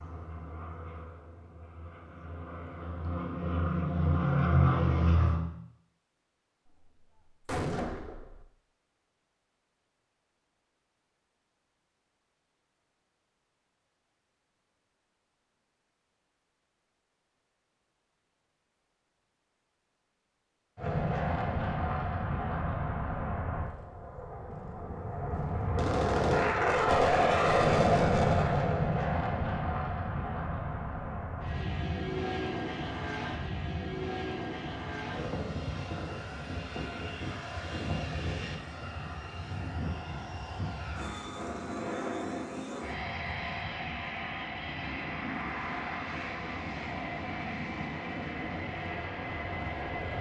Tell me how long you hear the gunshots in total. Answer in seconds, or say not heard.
4 s.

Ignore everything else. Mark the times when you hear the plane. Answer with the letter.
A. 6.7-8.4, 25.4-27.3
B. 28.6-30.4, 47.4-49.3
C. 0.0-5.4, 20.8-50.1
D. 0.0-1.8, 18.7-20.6
C.